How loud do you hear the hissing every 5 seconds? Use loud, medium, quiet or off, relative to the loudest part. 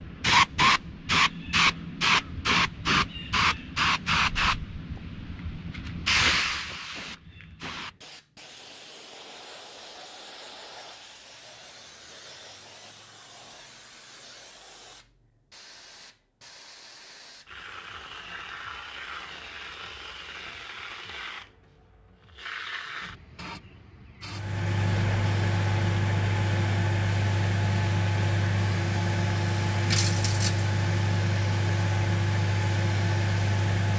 loud, medium, quiet, quiet, quiet, quiet, quiet.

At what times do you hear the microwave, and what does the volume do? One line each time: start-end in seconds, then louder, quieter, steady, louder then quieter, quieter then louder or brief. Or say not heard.
24.2-33.9 steady.